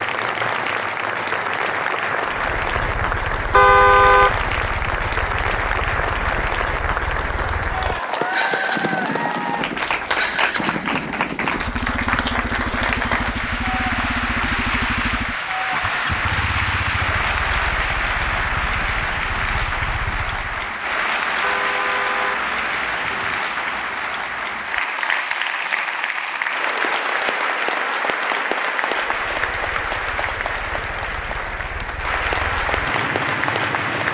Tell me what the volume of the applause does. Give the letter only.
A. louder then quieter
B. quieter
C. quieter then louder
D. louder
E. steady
E.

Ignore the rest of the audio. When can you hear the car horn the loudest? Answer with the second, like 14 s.
4 s.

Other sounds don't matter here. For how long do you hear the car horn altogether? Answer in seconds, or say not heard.
3 s.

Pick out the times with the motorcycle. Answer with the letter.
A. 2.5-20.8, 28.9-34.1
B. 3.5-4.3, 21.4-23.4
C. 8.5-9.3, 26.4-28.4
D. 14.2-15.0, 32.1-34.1
A.